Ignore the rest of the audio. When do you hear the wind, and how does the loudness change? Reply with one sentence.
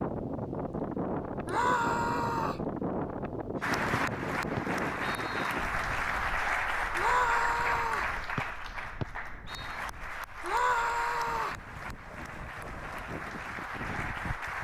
The wind can be heard from 0.0 to 14.5 s, getting quieter then louder.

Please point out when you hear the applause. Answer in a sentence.
You can hear the applause from 3.6 to 14.5 s.